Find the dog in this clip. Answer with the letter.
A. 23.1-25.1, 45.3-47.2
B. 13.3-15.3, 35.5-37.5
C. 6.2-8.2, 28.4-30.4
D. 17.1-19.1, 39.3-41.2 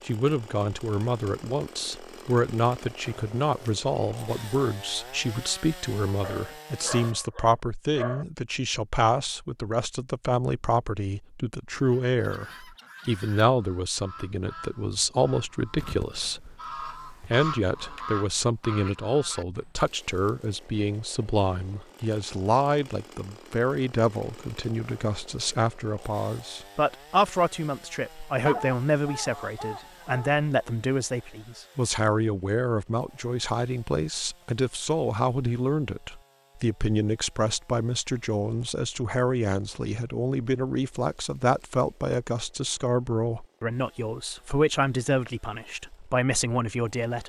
C.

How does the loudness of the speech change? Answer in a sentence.
The loudness of the speech stays about the same.